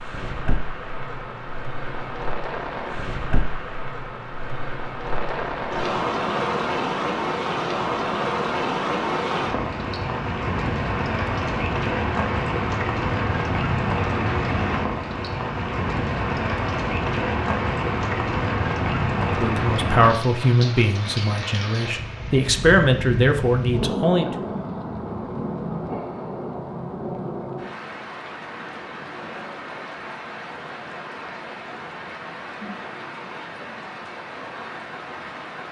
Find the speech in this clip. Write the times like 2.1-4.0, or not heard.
19.2-24.3.